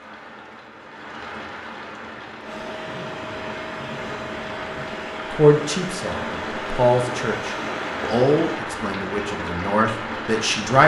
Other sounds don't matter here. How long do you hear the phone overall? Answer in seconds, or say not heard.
2 s.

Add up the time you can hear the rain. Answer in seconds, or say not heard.
11 s.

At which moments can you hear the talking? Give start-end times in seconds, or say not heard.
5.3-10.8.